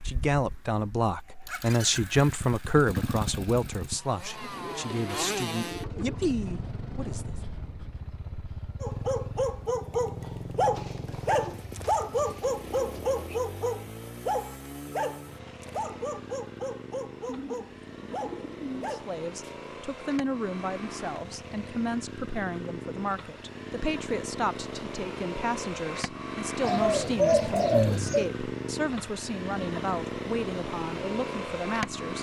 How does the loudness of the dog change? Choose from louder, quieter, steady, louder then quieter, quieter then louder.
quieter.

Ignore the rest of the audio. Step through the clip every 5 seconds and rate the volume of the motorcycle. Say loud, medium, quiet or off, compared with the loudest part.
medium, loud, medium, medium, medium, loud, loud.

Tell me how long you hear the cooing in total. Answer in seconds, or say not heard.
8 s.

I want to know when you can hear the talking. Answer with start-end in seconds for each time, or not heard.
0.1-7.3, 18.8-32.1.